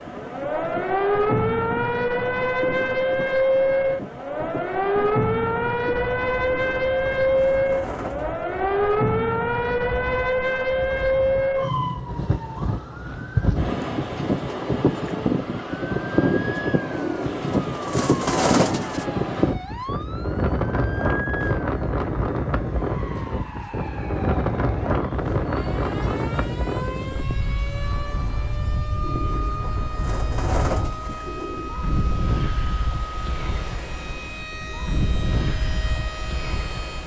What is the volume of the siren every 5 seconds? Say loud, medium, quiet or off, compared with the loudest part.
loud, loud, loud, quiet, quiet, quiet, quiet, quiet.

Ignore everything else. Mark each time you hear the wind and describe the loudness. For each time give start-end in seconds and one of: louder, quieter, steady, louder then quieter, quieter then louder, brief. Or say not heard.
0.0-37.0 louder then quieter.